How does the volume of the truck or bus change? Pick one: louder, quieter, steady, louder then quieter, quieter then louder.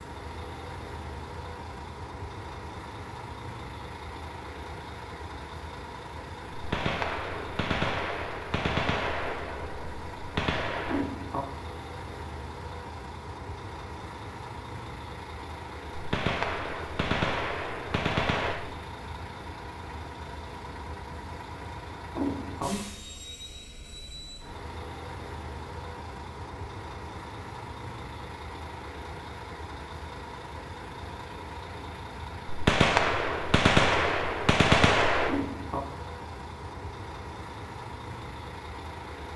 steady.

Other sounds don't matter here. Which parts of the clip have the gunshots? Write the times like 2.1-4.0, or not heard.
6.5-11.1, 15.9-18.6, 32.5-35.4.